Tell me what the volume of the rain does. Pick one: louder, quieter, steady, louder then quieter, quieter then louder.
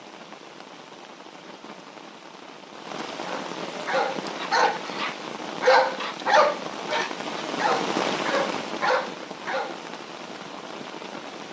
louder then quieter.